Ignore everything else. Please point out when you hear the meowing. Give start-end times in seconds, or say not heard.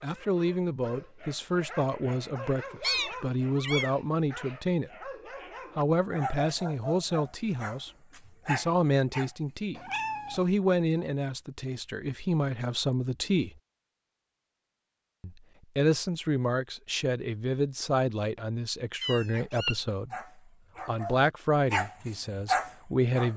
2.8-4.0, 9.8-10.4, 19.0-19.8.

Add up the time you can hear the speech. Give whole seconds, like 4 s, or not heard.
20 s.